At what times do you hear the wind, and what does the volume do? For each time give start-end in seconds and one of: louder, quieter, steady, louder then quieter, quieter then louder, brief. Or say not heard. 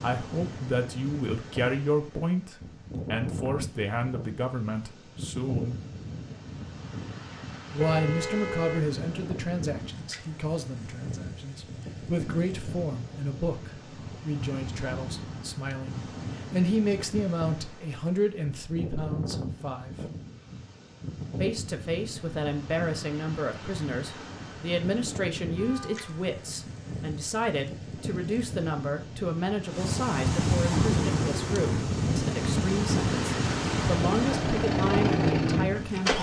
0.0-36.1 louder.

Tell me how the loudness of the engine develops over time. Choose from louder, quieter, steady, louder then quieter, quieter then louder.
louder.